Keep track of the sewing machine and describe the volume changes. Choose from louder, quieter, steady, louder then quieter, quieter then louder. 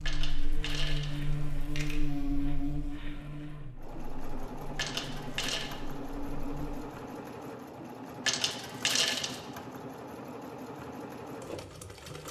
louder.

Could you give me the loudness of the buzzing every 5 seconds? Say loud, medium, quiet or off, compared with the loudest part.
loud, medium, off.